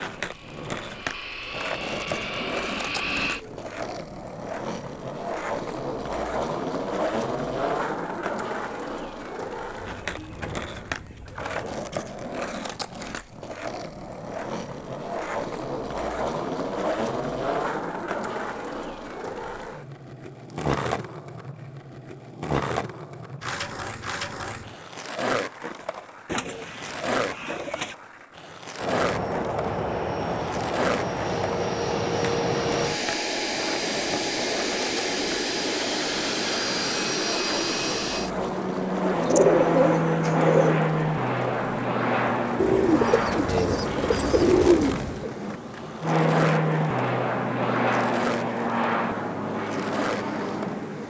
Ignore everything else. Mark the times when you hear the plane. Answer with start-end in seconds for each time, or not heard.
0.1-3.4, 28.8-51.0.